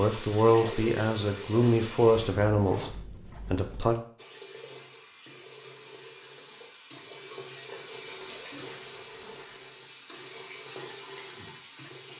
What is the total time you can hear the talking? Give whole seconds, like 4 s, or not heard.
4 s.